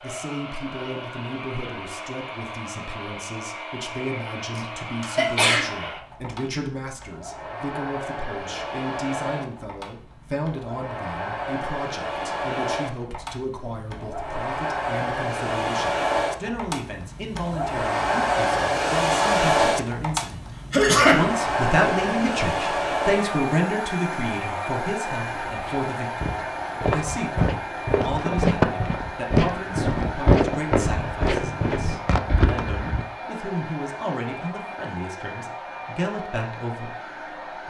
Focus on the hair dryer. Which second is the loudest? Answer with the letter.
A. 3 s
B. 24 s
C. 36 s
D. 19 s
D.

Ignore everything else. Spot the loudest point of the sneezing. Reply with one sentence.
The volume of the sneezing peaks at 21 seconds.